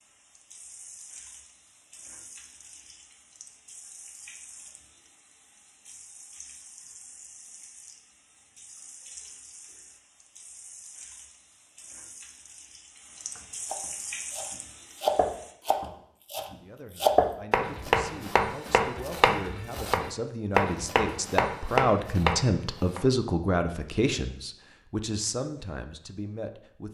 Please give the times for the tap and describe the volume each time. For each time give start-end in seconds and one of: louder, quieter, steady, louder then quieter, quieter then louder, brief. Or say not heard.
0.0-15.6 louder.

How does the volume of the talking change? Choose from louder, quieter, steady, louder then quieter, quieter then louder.
louder then quieter.